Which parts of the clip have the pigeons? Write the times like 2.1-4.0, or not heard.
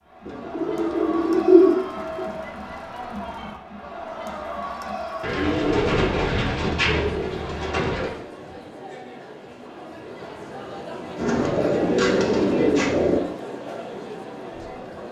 0.2-2.4, 5.2-8.2, 11.2-13.2.